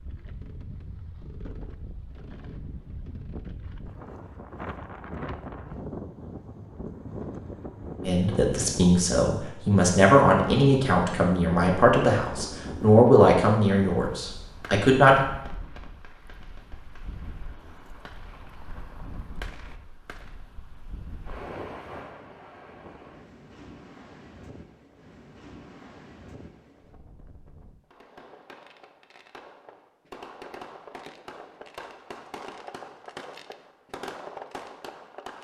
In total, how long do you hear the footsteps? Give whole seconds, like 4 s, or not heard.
not heard.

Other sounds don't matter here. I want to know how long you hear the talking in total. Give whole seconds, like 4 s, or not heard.
7 s.